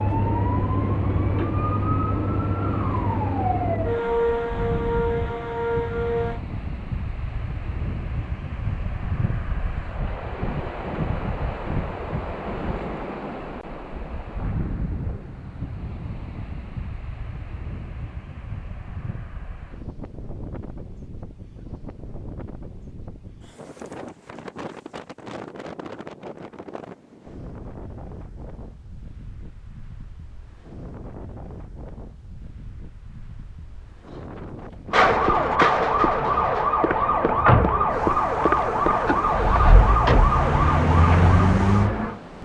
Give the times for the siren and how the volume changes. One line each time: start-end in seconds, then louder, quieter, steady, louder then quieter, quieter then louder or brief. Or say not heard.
0.0-6.4 steady
34.9-42.2 steady.